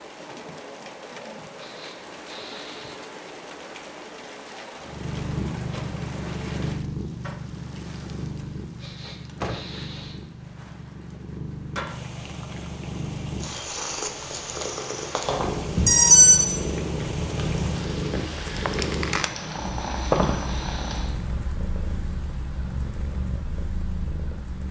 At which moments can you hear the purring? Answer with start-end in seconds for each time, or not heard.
4.8-24.6.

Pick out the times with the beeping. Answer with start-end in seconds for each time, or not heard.
15.2-16.5.